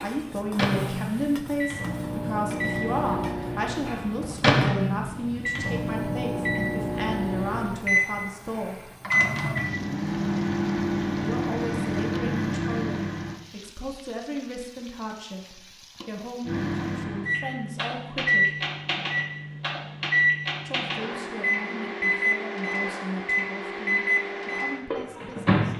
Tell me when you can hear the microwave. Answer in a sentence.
The microwave can be heard from 0.0 to 13.4 s and from 16.4 to 25.7 s.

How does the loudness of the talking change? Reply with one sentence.
The volume of the talking goes down.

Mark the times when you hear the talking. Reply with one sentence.
You can hear the talking from 0.0 to 8.9 s, from 11.2 to 18.6 s and from 20.6 to 25.7 s.